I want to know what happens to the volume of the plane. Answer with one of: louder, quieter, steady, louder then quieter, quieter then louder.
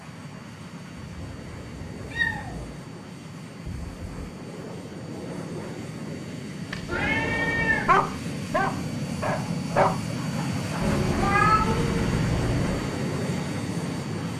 louder.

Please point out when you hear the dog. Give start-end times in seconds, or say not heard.
7.8-10.0.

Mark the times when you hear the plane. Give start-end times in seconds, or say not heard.
0.0-14.3.